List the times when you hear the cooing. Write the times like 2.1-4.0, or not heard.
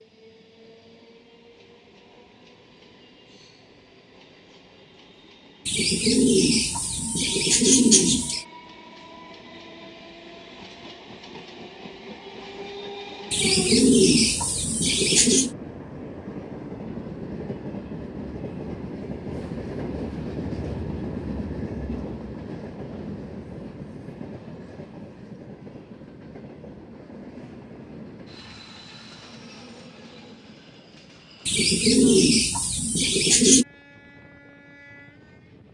5.7-8.4, 13.3-15.6, 31.4-33.6.